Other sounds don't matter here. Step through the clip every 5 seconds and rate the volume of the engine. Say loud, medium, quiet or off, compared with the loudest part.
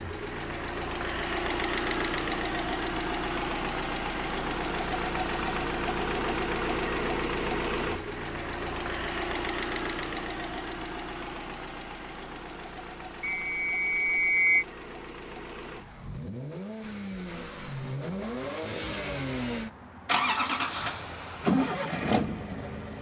loud, loud, medium, medium, loud.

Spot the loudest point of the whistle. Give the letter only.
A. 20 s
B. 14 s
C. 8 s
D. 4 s
B.